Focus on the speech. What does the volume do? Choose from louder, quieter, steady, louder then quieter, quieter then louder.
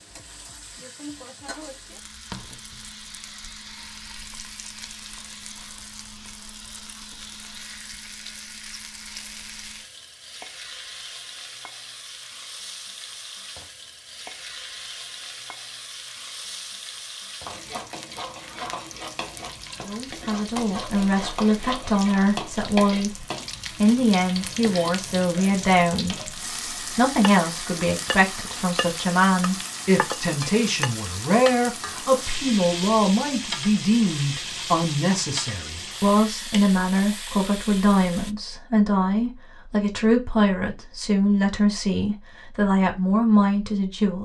steady.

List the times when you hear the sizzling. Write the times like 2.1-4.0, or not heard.
0.0-38.4.